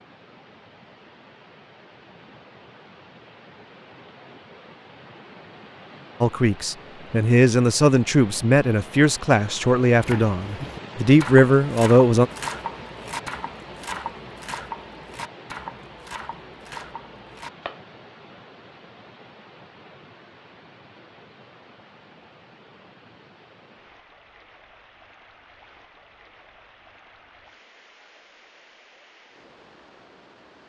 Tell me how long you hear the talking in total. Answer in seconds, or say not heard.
6 s.